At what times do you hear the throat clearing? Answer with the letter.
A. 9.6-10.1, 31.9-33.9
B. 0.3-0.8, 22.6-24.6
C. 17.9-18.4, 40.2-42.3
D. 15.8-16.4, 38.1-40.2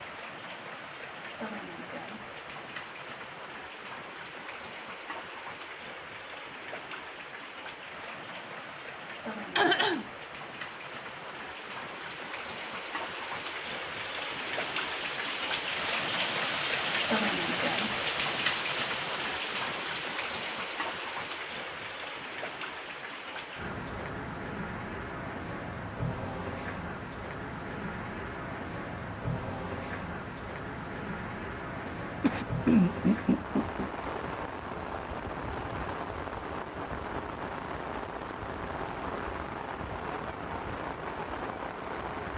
A.